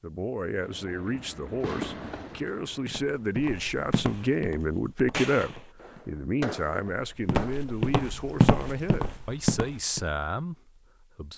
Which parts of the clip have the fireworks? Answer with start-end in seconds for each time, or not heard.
0.5-7.8.